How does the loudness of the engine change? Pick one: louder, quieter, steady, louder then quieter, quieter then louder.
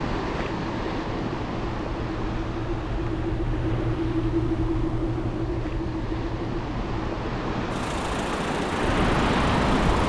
louder then quieter.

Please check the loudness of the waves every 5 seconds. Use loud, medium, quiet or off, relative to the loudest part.
medium, loud.